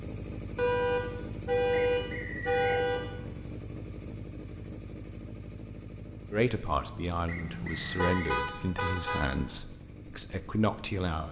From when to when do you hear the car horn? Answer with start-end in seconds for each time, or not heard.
0.6-3.1, 7.3-9.2.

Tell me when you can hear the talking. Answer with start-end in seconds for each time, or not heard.
6.3-11.2.